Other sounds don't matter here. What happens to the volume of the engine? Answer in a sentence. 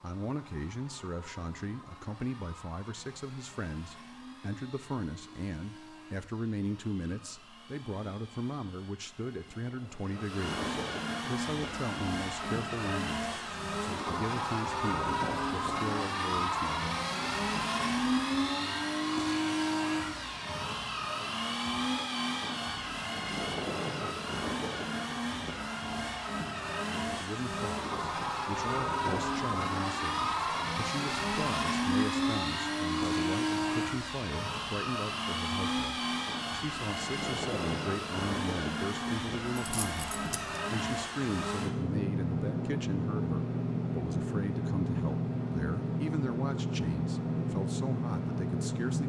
The volume of the engine goes up.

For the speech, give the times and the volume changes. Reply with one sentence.
The speech can be heard from 0.0 to 16.9 s, at a steady volume; and from 26.8 to 49.0 s, at a steady volume.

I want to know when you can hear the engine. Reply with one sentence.
You can hear the engine from 0.0 to 49.0 s.